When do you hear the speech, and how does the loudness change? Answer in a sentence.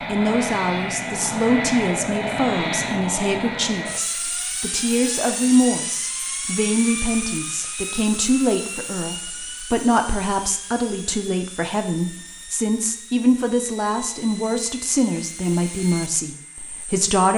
The speech can be heard from 0.1 to 17.3 s, at a steady volume.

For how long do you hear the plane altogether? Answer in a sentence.
You can hear the plane for 17 seconds altogether.